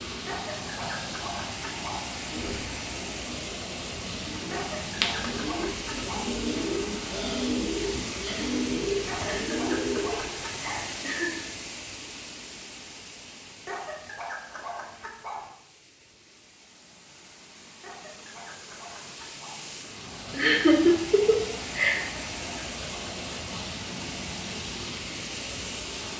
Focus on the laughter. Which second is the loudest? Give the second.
21 s.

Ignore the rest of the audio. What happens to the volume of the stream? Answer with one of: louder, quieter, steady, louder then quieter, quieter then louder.
quieter then louder.